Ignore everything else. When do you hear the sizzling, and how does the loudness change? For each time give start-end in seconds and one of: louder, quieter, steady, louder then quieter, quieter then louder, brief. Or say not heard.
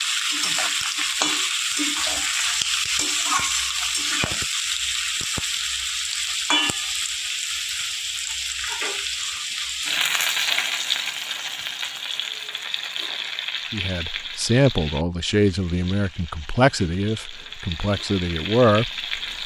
0.0-19.4 quieter.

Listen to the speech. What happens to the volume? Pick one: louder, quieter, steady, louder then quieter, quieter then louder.
quieter then louder.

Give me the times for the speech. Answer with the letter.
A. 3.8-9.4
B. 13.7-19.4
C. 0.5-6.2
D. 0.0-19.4
B.